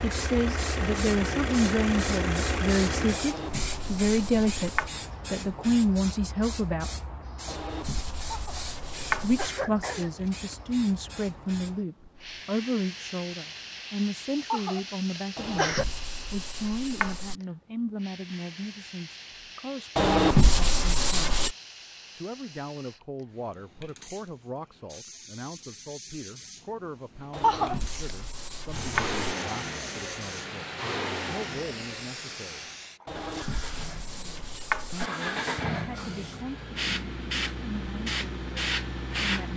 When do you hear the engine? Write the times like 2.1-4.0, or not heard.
0.0-3.2, 28.6-39.5.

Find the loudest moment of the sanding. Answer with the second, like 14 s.
20 s.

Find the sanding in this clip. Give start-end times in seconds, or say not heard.
3.1-4.9, 7.5-9.5, 15.3-17.4, 19.9-21.6, 27.3-29.2, 33.0-35.1.